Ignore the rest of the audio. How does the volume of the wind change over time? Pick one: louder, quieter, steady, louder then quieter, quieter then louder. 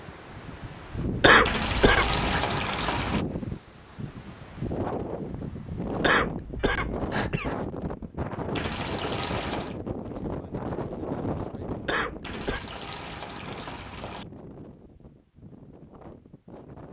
quieter.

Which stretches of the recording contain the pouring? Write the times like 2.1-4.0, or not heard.
1.4-3.2, 8.6-9.8, 12.2-14.2.